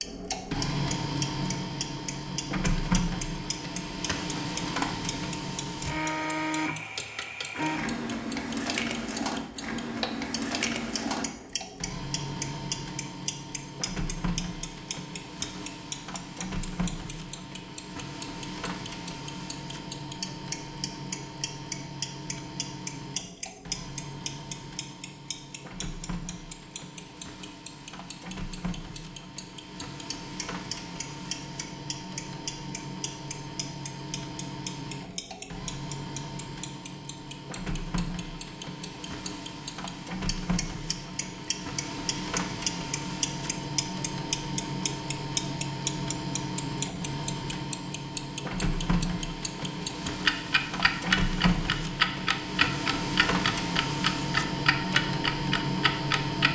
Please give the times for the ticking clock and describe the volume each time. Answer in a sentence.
You can hear the ticking clock from 0.0 to 56.5 s, getting louder.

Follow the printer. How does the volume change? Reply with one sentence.
The volume of the printer goes down, then up.